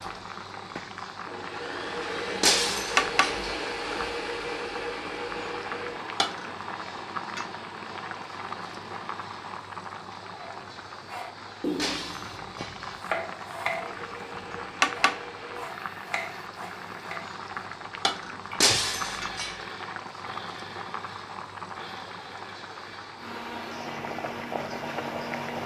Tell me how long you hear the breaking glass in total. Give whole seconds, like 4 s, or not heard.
3 s.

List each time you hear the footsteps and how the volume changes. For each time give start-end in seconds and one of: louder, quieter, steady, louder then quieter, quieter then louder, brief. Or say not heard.
not heard.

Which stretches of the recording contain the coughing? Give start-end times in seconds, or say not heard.
not heard.